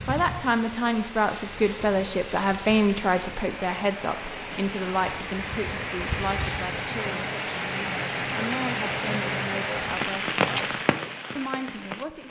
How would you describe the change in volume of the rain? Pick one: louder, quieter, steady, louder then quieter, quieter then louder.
louder.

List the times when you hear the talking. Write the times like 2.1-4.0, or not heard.
0.1-10.8, 11.3-12.2.